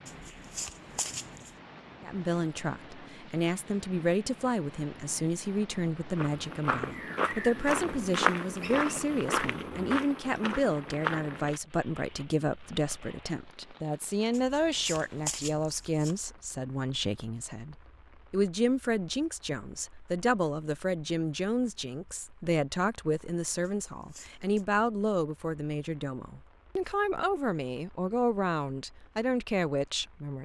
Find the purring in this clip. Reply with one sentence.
You can't hear the purring here.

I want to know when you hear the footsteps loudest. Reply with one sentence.
The loudest moment of the footsteps is at 8 seconds.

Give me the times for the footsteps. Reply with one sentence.
You can hear the footsteps from 6.2 to 11.6 s.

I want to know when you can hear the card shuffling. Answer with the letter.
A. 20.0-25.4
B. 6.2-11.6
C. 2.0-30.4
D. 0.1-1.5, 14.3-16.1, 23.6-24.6
D.